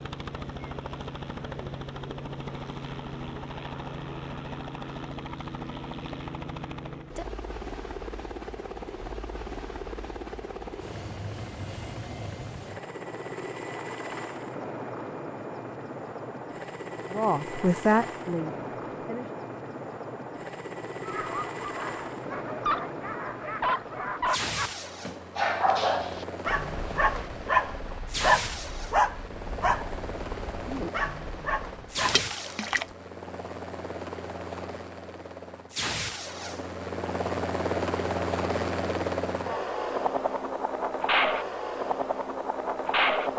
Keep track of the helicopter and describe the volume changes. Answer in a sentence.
The volume of the helicopter goes up.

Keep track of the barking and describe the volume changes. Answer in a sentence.
The volume of the barking goes up, then down.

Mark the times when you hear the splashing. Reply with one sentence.
You can hear the splashing from 32.0 to 33.0 s.